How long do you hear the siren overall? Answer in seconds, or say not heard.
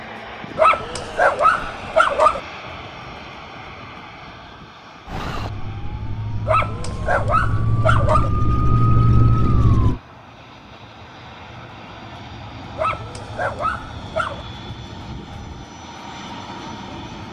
5 s.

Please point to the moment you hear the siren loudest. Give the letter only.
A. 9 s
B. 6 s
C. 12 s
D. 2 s
A.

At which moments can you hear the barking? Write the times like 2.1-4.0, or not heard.
0.6-2.4, 6.5-8.3, 12.8-14.4.